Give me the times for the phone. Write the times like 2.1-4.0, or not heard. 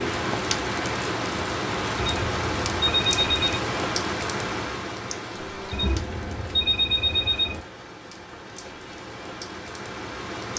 1.9-3.6, 5.7-7.6.